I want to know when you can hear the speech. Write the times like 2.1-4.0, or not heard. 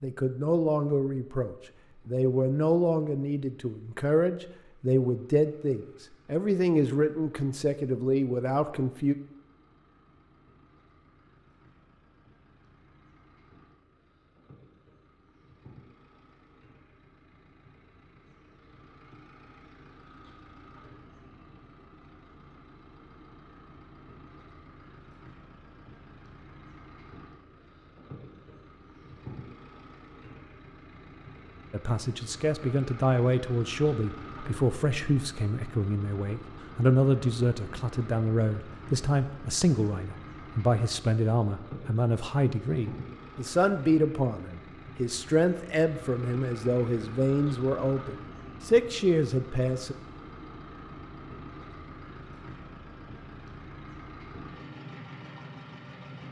0.0-9.2, 31.7-50.0.